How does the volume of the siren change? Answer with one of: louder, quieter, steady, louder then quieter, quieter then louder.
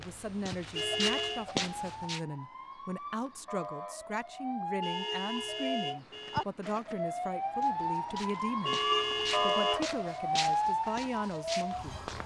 louder.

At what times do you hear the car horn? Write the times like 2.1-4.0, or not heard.
0.8-1.4, 4.8-6.5, 8.7-9.8.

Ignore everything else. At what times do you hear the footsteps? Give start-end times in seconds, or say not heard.
0.0-2.2, 6.0-12.2.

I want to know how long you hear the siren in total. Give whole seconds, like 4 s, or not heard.
12 s.